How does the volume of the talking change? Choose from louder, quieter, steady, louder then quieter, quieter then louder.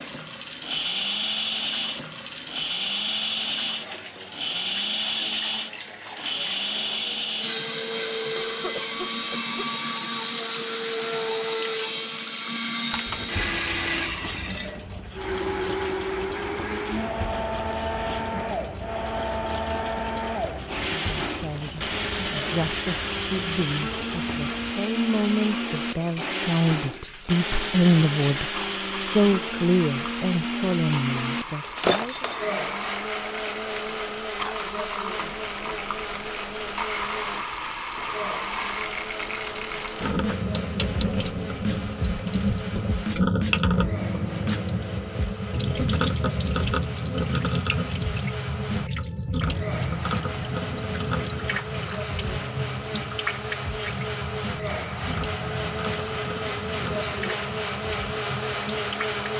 louder then quieter.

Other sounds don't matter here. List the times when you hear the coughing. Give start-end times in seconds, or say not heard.
8.3-9.8.